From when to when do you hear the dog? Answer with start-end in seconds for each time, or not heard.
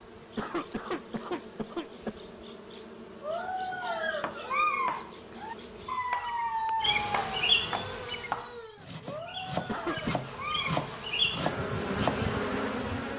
3.2-10.8.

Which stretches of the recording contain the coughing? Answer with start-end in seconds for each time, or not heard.
0.2-2.2, 9.5-10.2.